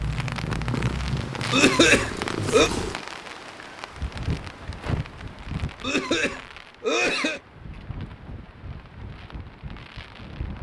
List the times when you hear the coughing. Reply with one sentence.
The coughing can be heard from 1.5 to 2.7 s and from 5.8 to 7.4 s.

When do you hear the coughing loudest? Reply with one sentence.
The volume of the coughing peaks at 2 seconds.